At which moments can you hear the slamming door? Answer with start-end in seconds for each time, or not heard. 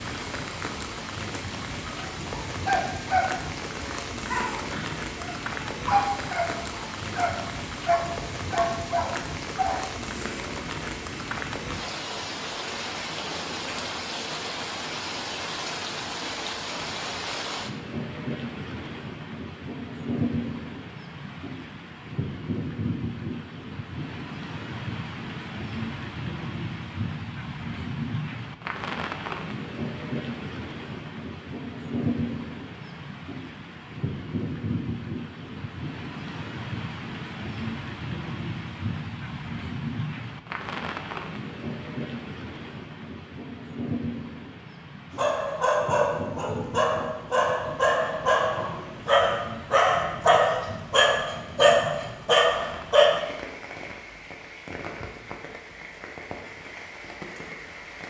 not heard.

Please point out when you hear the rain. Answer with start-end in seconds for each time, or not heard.
0.0-58.0.